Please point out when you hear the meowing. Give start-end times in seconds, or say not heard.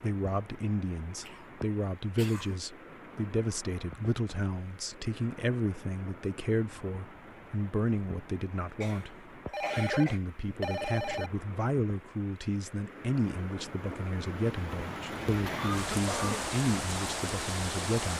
not heard.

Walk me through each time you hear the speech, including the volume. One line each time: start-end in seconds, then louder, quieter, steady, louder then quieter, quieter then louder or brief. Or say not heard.
0.0-18.1 steady.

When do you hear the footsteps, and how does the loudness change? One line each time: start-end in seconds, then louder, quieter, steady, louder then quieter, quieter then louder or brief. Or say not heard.
not heard.